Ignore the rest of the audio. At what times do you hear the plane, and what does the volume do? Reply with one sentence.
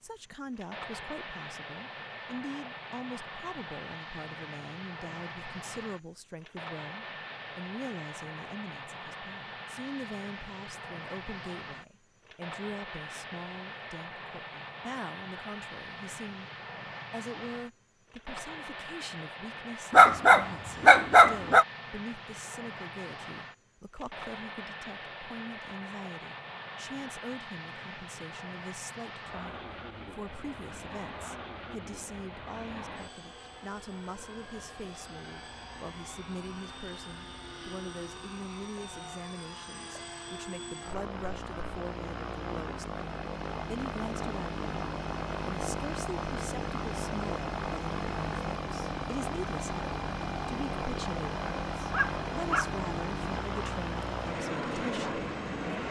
You can hear the plane from 0.0 to 55.8 s, getting louder.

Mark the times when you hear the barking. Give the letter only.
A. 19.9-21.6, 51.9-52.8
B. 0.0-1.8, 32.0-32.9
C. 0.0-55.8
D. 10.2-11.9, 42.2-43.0
A.